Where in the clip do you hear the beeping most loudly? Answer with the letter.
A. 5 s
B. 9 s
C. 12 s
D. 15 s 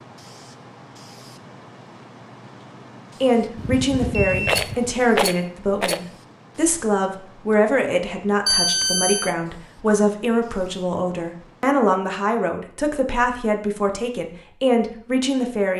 B.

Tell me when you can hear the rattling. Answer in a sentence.
The rattling can be heard from 4.5 to 6.0 s.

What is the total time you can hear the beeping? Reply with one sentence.
The beeping can be heard for 2 seconds in total.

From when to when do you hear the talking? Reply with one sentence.
You can hear the talking from 3.2 to 15.7 s.